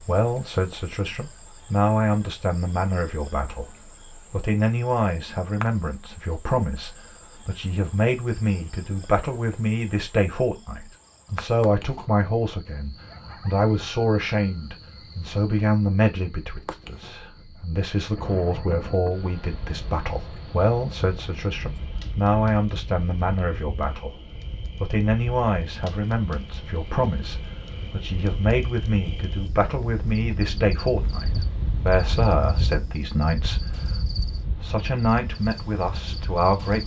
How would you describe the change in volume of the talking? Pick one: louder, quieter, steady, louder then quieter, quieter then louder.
steady.